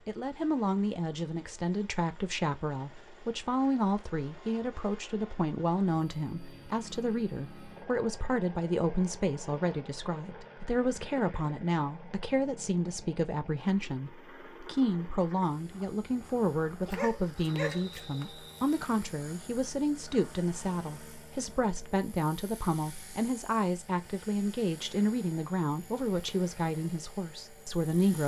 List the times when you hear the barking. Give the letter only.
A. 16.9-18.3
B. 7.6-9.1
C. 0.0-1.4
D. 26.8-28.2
A.